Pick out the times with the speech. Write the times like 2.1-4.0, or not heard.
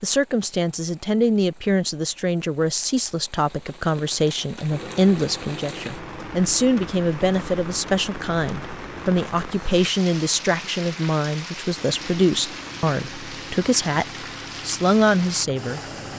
0.0-15.8.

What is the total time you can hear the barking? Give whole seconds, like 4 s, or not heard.
not heard.